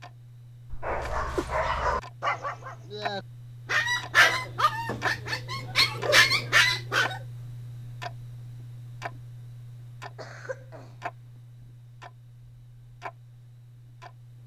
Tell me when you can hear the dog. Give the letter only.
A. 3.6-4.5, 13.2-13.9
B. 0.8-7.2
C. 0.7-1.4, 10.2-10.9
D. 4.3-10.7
B.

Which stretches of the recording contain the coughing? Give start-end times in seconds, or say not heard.
0.7-1.4, 10.2-10.9.